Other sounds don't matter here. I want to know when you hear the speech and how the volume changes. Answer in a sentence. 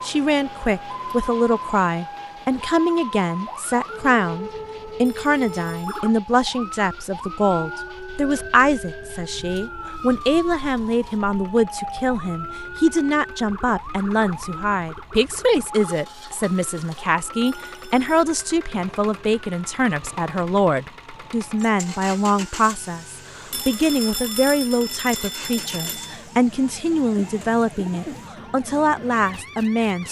You can hear the speech from 0.0 to 30.0 s, at a steady volume.